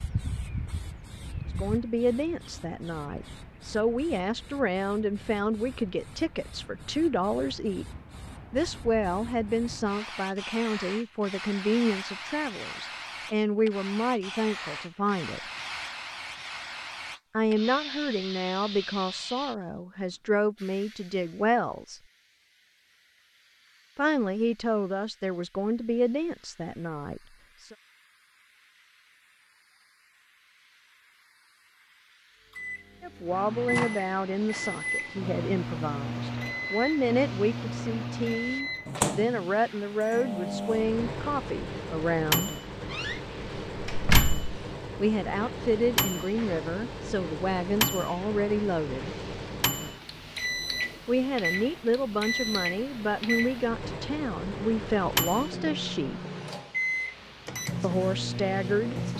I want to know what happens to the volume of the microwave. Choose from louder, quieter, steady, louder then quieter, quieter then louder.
steady.